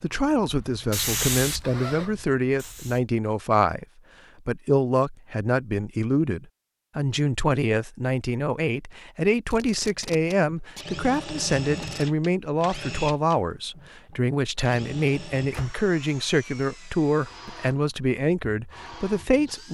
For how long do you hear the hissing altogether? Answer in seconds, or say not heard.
3 s.